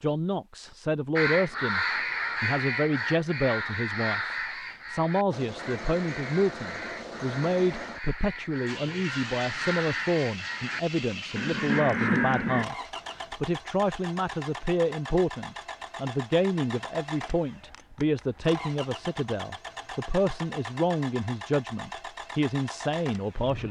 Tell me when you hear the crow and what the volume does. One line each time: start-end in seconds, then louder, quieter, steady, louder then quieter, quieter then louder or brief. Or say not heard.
1.1-12.7 quieter then louder.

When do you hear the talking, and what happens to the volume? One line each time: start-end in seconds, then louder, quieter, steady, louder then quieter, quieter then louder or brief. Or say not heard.
0.0-23.6 steady.